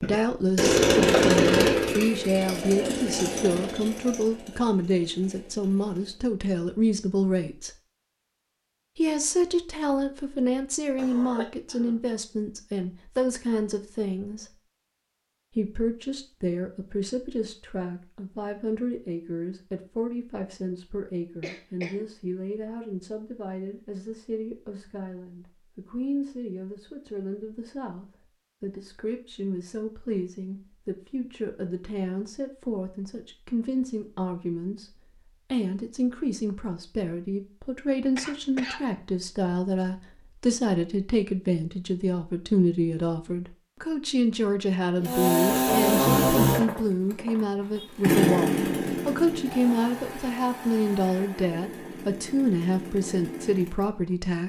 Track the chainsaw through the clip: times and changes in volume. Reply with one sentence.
The chainsaw can be heard from 0.0 to 6.2 s, getting quieter; and from 45.0 to 54.4 s, getting quieter.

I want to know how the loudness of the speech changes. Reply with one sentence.
The volume of the speech goes down, then up.